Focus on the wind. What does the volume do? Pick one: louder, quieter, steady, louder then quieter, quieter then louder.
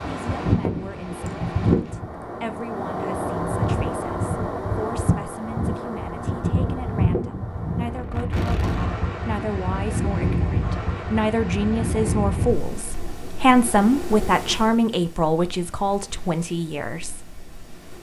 quieter.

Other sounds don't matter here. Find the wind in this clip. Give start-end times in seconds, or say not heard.
0.0-17.9.